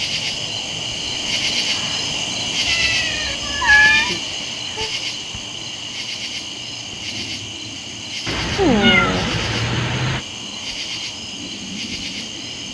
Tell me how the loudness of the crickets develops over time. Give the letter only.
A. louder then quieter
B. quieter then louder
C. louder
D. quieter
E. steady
D.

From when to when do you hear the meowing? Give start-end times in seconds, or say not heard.
2.6-4.2, 8.2-10.2.